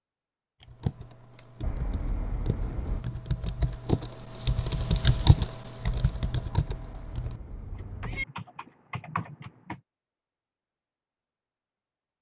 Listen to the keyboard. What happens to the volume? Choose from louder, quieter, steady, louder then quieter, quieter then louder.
louder then quieter.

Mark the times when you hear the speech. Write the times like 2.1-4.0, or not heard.
not heard.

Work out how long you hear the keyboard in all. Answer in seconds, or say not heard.
9 s.